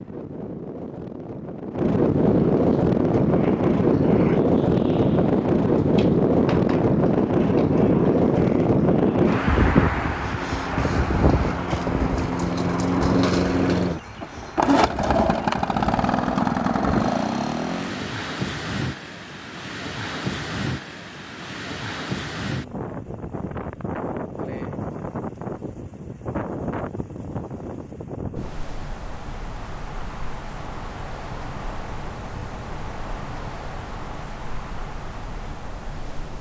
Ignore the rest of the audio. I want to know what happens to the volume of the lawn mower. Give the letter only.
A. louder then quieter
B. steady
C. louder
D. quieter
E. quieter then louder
C.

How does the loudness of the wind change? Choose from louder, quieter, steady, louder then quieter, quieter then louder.
quieter.